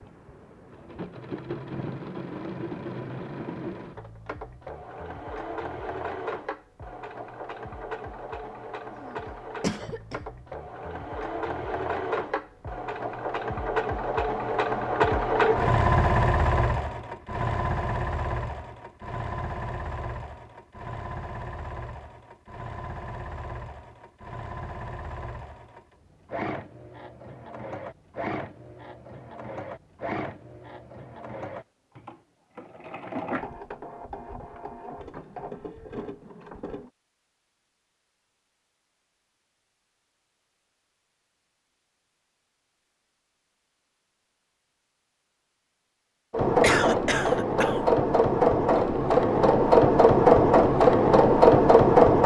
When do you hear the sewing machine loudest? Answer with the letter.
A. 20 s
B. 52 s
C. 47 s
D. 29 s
B.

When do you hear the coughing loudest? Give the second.
47 s.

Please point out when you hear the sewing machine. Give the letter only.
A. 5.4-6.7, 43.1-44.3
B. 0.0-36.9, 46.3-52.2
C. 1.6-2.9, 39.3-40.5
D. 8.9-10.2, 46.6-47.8
B.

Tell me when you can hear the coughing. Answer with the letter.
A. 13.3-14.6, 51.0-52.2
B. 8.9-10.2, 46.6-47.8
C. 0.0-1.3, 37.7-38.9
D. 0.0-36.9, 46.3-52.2
B.